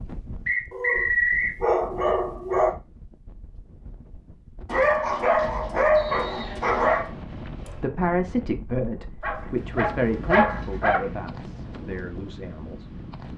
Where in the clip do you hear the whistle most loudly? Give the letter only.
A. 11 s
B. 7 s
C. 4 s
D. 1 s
D.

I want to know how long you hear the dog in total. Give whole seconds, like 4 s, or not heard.
6 s.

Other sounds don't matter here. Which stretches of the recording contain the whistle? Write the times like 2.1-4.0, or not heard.
0.5-1.6, 6.0-7.0, 10.2-11.2.